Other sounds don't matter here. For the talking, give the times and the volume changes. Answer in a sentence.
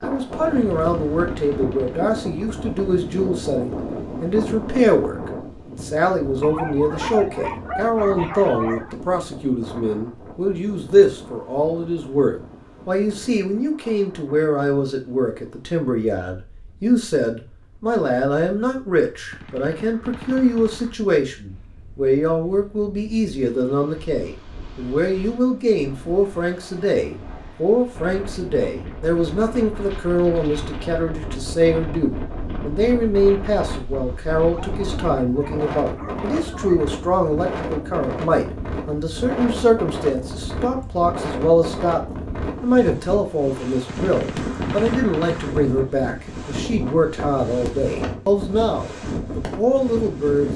The talking can be heard from 0.0 to 50.5 s, at a steady volume.